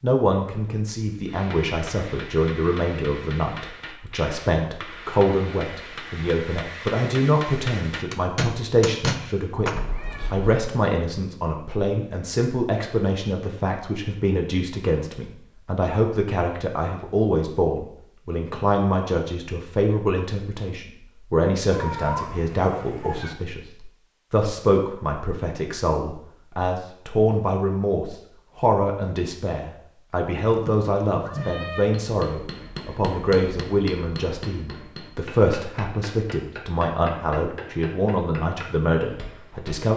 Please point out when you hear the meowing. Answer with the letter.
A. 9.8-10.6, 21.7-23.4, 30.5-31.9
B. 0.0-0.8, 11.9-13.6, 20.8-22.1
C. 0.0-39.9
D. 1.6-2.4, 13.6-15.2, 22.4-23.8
A.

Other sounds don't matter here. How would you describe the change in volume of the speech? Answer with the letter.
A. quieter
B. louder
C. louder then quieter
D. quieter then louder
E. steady
E.